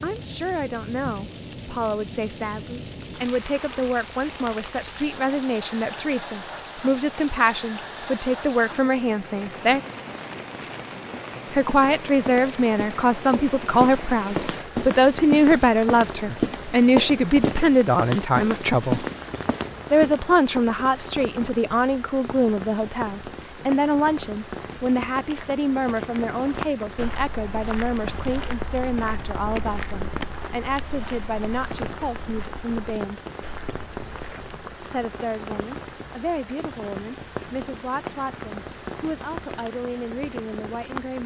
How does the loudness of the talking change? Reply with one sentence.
The volume of the talking goes up, then down.